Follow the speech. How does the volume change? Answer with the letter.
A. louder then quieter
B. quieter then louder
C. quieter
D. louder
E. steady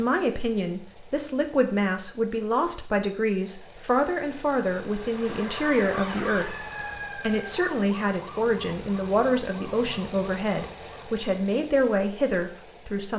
E.